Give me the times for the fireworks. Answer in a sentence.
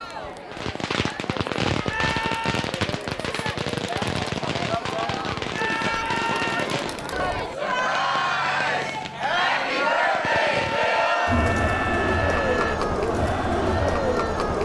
You can hear the fireworks from 0.5 to 11.2 s.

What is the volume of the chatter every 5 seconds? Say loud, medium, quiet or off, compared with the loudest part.
medium, loud, loud.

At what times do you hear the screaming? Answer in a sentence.
You can hear the screaming from 1.9 to 2.7 s, from 5.5 to 6.7 s and from 10.2 to 12.8 s.